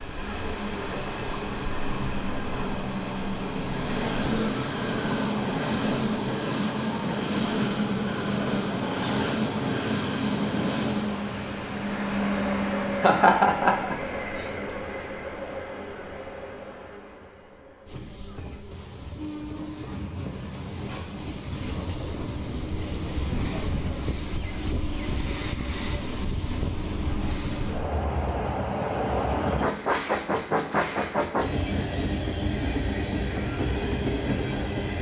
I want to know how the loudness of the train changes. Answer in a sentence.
The loudness of the train goes down, then up.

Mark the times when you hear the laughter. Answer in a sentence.
The laughter can be heard from 12.9 to 14.5 s.